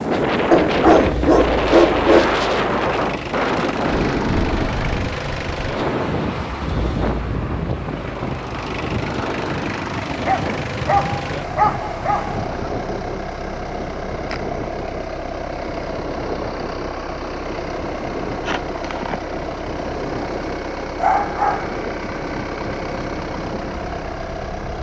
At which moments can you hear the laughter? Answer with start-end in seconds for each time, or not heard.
18.3-19.2.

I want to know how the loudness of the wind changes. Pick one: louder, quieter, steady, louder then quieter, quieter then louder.
quieter.